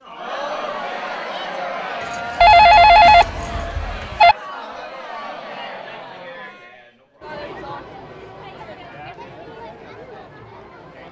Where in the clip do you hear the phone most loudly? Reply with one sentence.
The volume of the phone peaks at 3 seconds.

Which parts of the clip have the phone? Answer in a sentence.
You can hear the phone from 2.4 to 4.3 s.